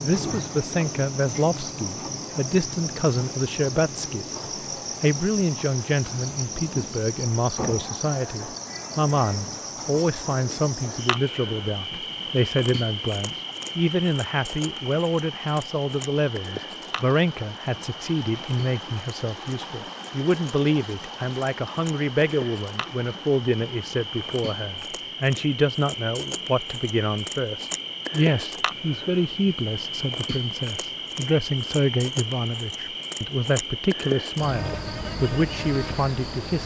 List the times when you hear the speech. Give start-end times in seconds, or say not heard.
0.0-4.4, 5.0-36.6.